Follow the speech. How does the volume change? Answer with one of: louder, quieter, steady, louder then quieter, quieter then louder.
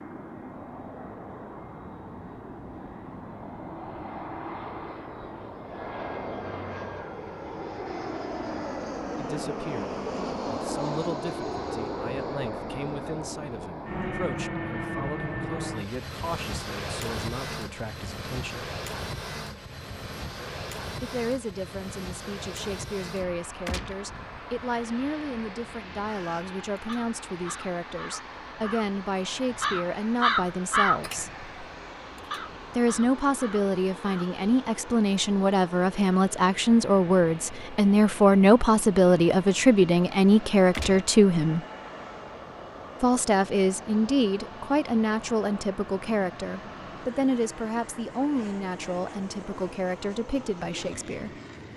louder then quieter.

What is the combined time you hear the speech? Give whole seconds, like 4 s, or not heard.
37 s.